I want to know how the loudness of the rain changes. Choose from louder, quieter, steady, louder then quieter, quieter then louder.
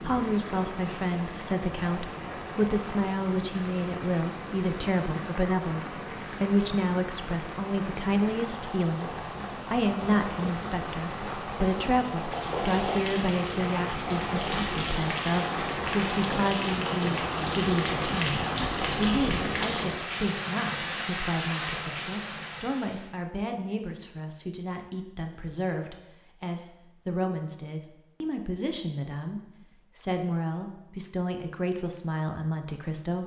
louder.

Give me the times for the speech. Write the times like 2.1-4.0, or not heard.
0.0-33.2.